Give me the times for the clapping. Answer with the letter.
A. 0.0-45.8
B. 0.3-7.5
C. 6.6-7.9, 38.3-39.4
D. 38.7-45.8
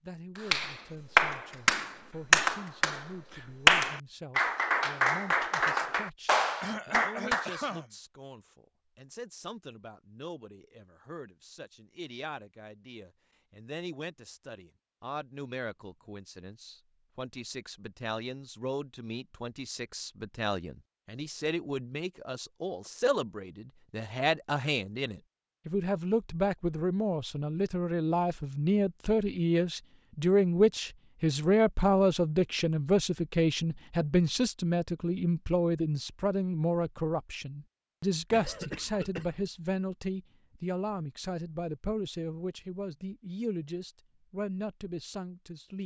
B.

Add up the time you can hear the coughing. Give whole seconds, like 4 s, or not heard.
2 s.